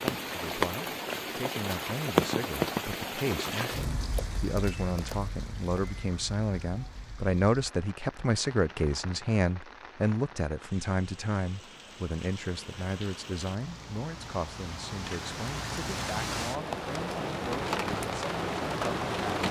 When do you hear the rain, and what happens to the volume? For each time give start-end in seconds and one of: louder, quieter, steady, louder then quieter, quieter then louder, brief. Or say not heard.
0.0-19.4 quieter then louder.